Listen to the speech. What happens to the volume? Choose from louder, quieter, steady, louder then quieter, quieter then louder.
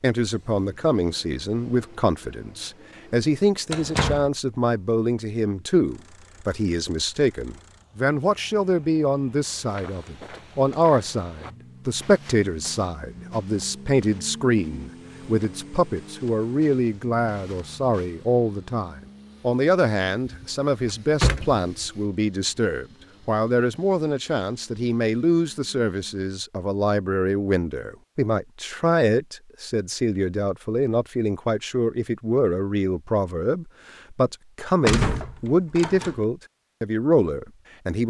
steady.